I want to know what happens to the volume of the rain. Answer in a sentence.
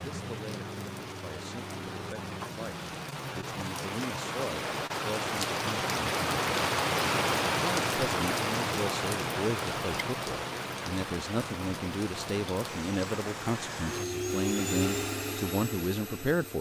The loudness of the rain goes up, then down.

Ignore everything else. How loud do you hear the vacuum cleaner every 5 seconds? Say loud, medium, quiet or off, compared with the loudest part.
off, off, loud, loud.